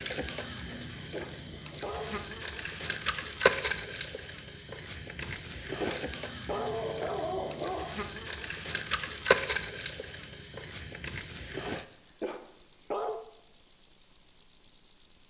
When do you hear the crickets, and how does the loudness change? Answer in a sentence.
You can hear the crickets from 0.0 to 15.2 s, at a steady volume.